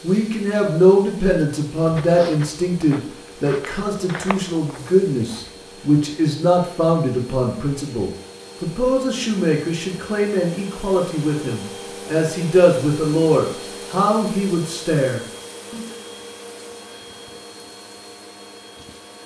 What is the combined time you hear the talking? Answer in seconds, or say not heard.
16 s.